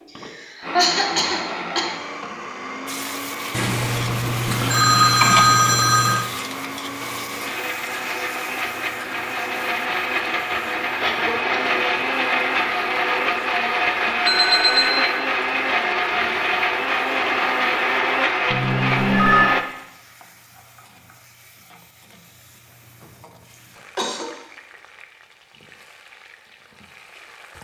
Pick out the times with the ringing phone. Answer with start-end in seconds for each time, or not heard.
3.5-6.2, 14.2-15.1, 18.5-19.5.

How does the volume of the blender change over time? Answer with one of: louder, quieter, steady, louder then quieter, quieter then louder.
louder.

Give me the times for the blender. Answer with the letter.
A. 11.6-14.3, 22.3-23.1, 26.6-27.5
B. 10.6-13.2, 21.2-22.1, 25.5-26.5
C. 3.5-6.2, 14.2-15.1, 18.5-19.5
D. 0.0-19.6
D.